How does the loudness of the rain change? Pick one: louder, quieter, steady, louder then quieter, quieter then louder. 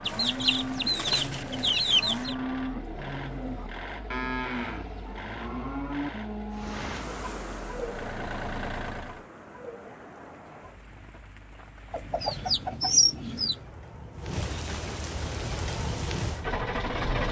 quieter then louder.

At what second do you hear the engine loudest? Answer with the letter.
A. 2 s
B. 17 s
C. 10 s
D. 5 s
B.